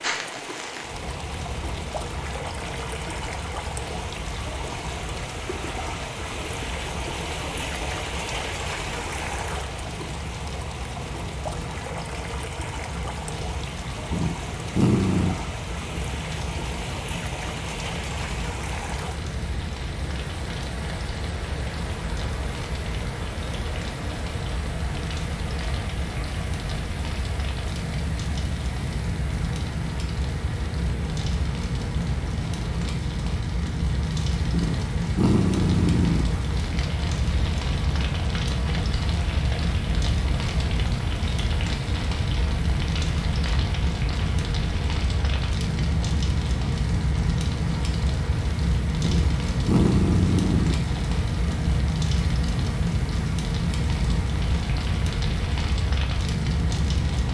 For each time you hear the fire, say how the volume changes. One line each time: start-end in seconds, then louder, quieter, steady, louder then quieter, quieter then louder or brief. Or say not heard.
0.0-57.3 louder.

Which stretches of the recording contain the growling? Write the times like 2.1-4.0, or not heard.
14.1-15.4, 34.5-36.3, 49.0-50.8.